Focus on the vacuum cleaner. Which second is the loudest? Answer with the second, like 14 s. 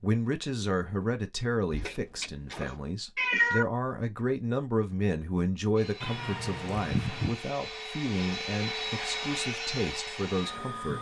9 s.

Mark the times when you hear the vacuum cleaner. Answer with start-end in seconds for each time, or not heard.
5.8-10.9.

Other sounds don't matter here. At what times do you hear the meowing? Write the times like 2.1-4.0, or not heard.
1.7-3.6, 6.0-7.3.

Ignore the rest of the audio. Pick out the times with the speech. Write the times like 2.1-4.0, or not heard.
0.0-10.9.